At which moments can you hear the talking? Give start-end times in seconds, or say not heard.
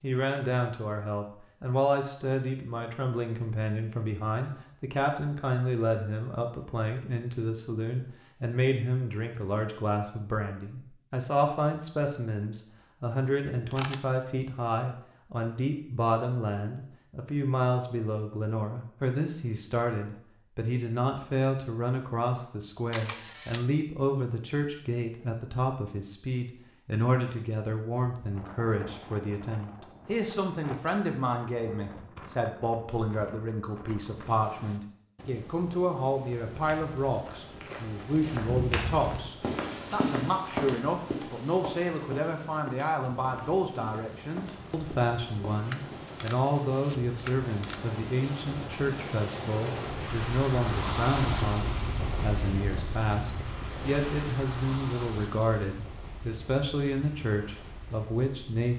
0.0-58.7.